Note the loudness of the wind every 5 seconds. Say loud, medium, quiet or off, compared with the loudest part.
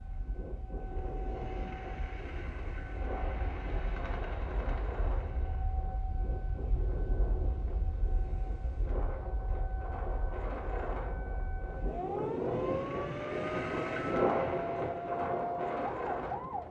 medium, medium, loud, loud.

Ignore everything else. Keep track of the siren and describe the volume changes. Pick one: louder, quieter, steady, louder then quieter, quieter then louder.
louder.